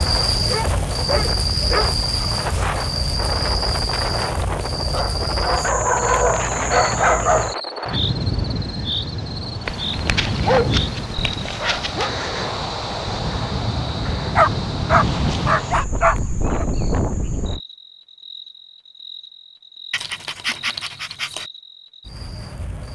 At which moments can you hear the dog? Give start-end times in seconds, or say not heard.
0.5-2.8, 4.9-7.5, 9.7-12.1, 14.3-16.6, 19.9-21.4.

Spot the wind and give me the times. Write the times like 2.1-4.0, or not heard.
0.0-17.6.